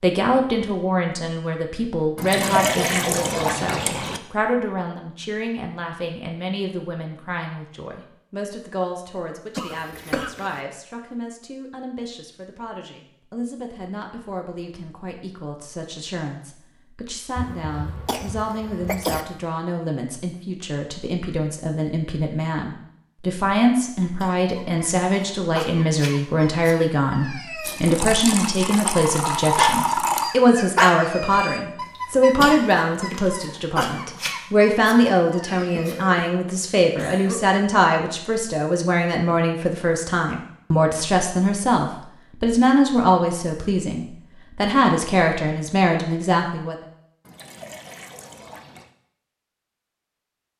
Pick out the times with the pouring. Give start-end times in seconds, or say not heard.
2.1-4.2, 27.6-30.4, 47.2-48.9.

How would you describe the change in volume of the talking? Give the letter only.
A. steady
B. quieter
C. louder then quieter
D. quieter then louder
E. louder
D.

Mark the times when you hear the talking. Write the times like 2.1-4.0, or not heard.
0.0-46.8.